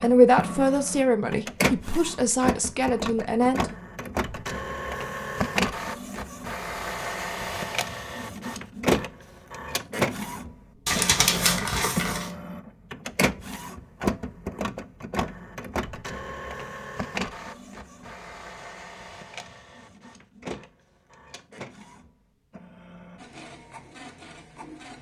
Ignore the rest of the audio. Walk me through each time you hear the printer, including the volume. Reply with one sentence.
The printer can be heard from 0.0 to 24.9 s, getting quieter.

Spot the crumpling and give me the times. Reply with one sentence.
You can hear the crumpling from 10.8 to 12.3 s.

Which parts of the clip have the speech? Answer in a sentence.
You can hear the speech from 0.0 to 3.8 s.